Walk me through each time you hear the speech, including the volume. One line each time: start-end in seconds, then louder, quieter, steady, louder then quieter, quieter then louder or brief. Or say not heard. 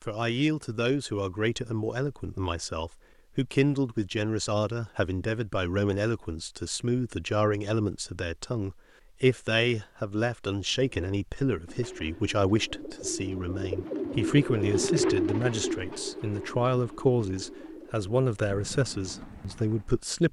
0.0-20.2 steady.